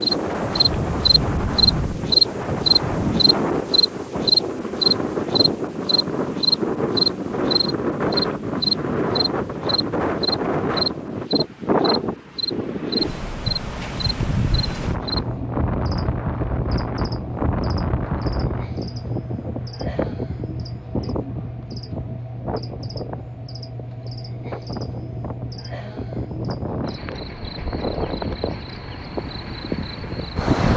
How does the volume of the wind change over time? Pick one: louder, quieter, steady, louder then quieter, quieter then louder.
quieter.